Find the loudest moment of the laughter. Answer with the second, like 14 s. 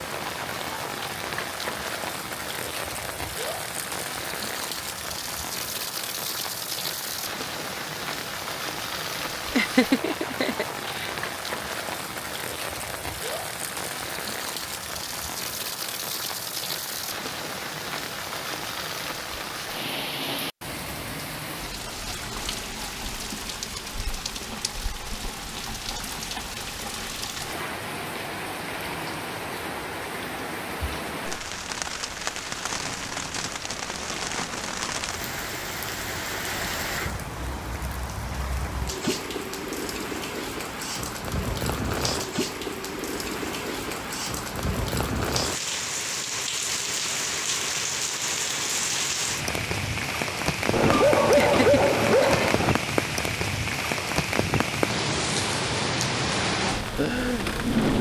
10 s.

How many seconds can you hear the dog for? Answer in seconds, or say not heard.
2 s.